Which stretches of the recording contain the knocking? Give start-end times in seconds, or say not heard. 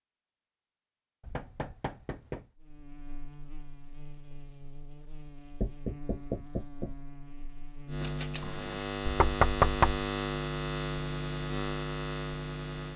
1.2-2.5, 5.6-7.0, 9.1-10.1.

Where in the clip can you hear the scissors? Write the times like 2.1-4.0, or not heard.
8.0-8.8.